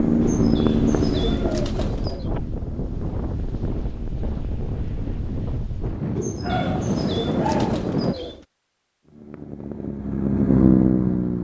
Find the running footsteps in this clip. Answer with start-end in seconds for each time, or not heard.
not heard.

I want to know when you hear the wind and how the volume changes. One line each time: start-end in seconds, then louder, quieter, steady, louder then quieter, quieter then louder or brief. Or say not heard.
0.0-8.2 louder.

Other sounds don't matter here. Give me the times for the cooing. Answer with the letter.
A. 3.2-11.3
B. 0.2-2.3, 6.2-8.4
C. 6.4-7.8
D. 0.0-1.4
B.